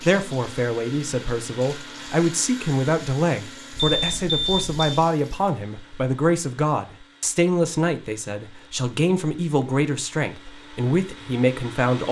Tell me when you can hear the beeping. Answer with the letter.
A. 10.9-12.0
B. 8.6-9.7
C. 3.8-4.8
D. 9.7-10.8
C.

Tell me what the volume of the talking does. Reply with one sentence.
The volume of the talking stays about the same.